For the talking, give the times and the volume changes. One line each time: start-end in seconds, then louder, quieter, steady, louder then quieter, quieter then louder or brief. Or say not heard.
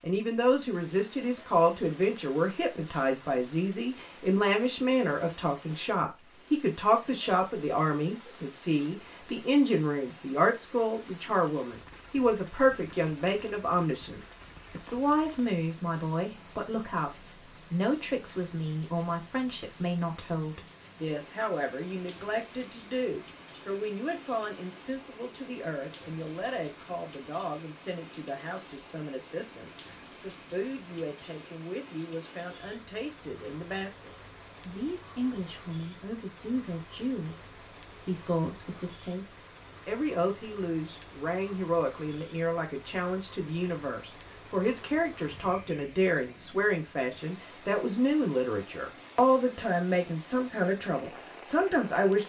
0.0-52.2 quieter then louder.